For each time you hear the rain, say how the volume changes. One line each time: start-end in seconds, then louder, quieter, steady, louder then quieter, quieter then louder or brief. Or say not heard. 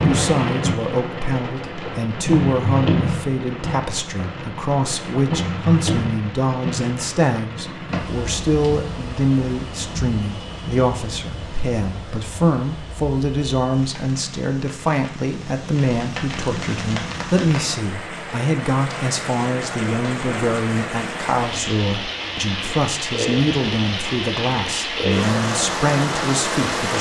0.0-26.9 quieter then louder.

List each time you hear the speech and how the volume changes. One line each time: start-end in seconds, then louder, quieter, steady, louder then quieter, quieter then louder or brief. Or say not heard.
0.0-26.9 steady.